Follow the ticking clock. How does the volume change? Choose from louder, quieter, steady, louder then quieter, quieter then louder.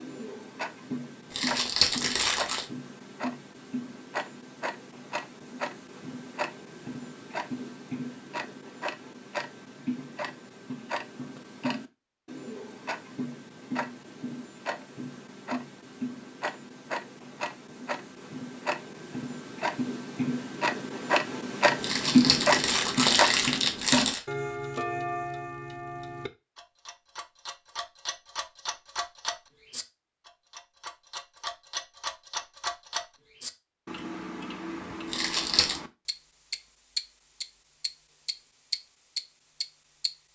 louder then quieter.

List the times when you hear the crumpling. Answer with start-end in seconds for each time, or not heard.
1.3-2.6, 21.8-24.2, 35.1-35.8.